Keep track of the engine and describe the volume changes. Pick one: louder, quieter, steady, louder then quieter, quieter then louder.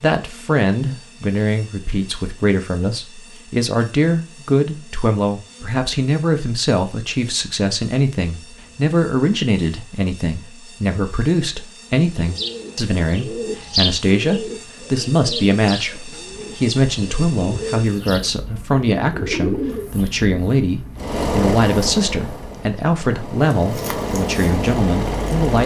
quieter then louder.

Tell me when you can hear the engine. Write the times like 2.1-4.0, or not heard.
20.9-25.6.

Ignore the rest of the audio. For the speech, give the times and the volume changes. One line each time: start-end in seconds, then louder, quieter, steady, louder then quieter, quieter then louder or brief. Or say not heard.
0.0-25.6 steady.